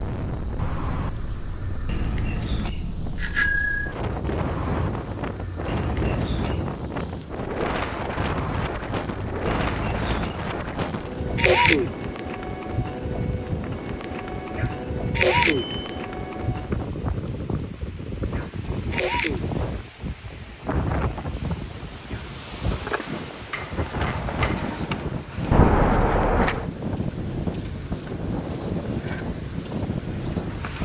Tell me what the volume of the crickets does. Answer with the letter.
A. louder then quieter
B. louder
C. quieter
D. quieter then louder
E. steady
D.